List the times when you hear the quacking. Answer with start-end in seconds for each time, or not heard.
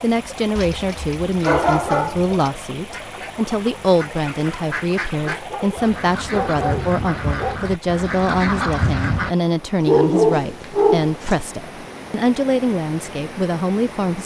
3.0-9.3.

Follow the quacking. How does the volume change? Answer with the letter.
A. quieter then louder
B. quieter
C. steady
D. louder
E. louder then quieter
D.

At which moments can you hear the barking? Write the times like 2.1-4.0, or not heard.
0.6-2.5, 5.3-7.6, 9.8-11.4.